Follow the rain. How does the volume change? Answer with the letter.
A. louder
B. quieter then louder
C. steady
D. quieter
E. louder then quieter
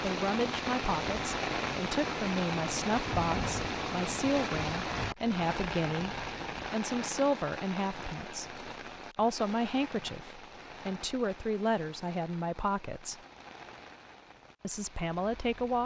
D.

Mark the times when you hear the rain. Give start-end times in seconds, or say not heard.
0.0-15.8.